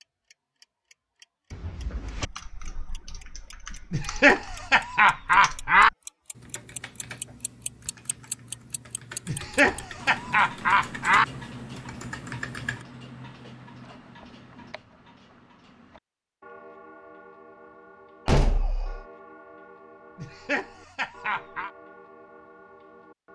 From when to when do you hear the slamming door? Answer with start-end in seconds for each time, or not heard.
1.5-2.3, 9.6-10.0, 18.2-19.1.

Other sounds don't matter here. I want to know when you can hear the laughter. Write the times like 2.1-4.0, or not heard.
3.9-5.9, 9.2-11.2, 20.1-21.7.